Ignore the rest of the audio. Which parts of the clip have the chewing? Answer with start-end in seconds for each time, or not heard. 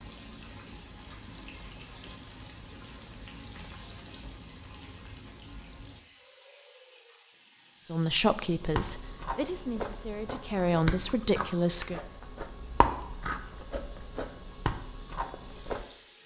8.6-15.8.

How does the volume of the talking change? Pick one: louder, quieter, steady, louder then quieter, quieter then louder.
quieter then louder.